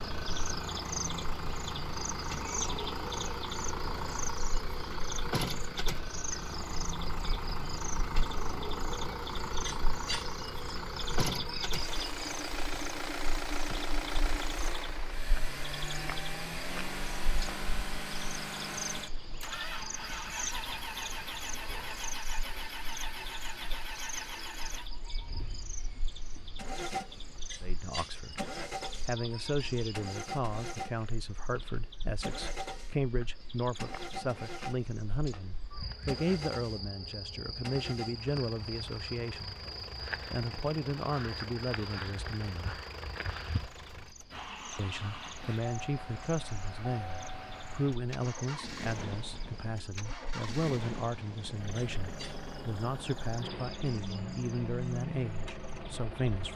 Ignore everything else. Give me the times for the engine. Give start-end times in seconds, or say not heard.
0.0-56.5.